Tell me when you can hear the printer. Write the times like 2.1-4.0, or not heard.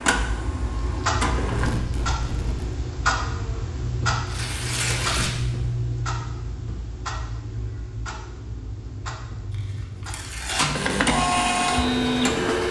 0.0-1.7, 10.6-12.6.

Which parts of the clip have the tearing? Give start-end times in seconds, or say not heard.
1.5-2.8, 4.2-5.5, 9.5-10.7.